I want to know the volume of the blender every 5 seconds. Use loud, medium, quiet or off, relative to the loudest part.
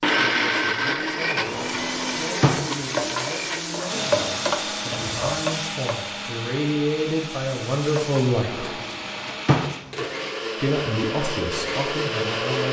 loud, medium, loud.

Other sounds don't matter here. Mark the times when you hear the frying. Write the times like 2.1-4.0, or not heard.
1.4-8.4.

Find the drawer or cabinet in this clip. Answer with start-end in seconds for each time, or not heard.
1.4-2.9, 8.5-10.0.